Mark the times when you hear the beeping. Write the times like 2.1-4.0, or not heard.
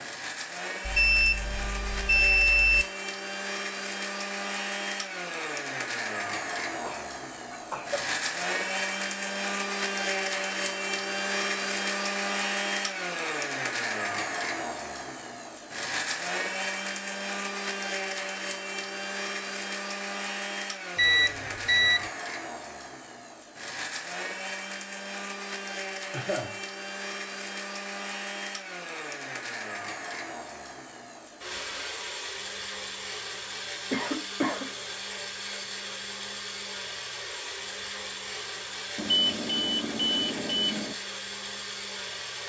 0.8-2.9, 20.9-22.1, 39.0-41.0.